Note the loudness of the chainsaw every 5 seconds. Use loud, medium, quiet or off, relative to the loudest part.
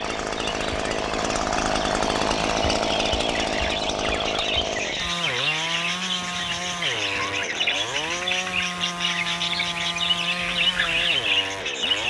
loud, medium, medium.